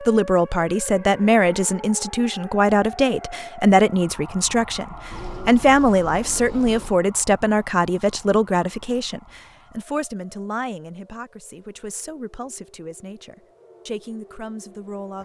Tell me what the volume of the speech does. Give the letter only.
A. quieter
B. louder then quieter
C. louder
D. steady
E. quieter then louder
A.